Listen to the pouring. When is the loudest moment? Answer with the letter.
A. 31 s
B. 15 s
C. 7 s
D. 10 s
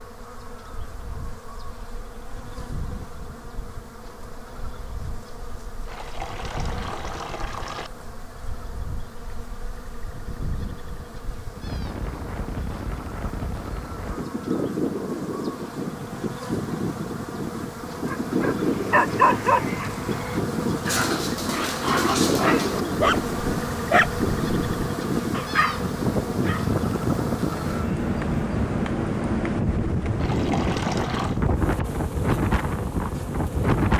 A.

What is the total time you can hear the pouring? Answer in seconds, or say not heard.
3 s.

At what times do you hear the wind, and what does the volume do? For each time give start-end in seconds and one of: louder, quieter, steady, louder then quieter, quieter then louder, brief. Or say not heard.
0.0-33.9 louder.